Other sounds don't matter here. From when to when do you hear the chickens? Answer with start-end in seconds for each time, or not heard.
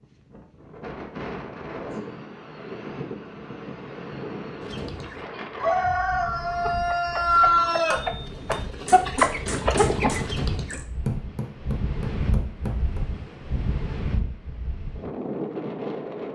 4.6-10.8.